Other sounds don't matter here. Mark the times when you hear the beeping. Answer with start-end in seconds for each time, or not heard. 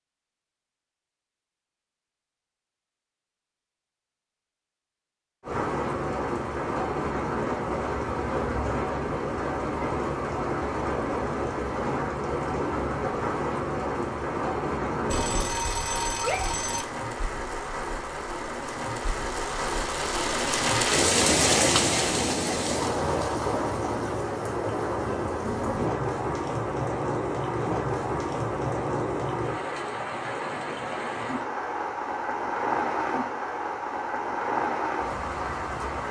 15.1-16.9.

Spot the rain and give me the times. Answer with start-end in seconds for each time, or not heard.
5.4-36.0.